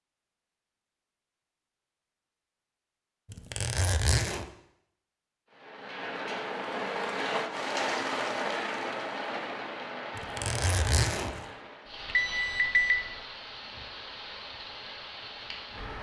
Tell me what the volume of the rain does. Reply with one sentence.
The volume of the rain goes down.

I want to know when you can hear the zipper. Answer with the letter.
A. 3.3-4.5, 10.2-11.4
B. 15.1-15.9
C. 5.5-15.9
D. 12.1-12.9
A.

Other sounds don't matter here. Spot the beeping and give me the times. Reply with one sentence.
You can hear the beeping from 12.1 to 12.9 s.